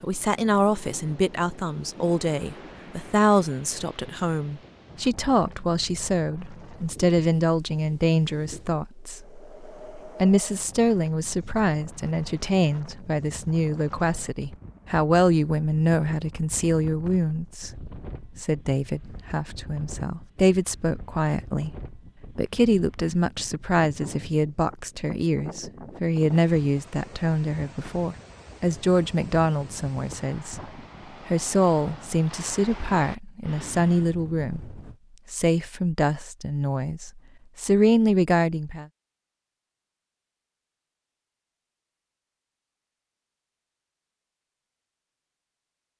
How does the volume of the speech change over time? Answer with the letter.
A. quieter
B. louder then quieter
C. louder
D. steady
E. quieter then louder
D.